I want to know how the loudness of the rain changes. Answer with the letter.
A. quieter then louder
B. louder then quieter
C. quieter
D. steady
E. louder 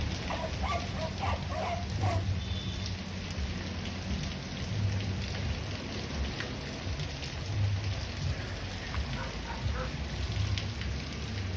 D.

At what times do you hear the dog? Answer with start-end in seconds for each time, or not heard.
0.2-2.3, 8.1-10.1.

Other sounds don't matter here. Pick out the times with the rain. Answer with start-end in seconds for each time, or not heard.
0.0-11.5.